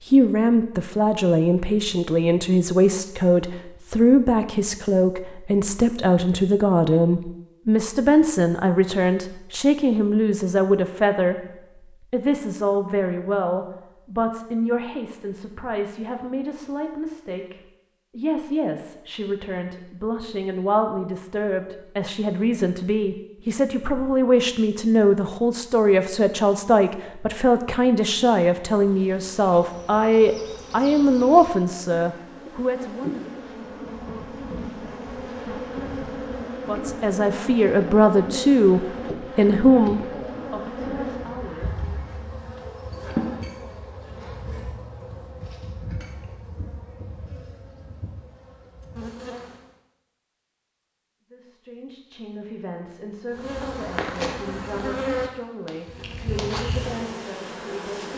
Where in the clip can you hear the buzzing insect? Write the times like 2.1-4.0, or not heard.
28.8-49.8, 53.3-58.1.